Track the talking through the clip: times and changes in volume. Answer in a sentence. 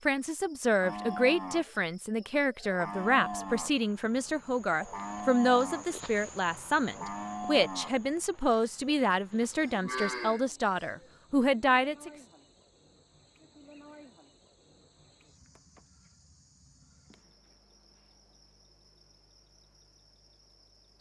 You can hear the talking from 0.1 to 12.1 s, at a steady volume.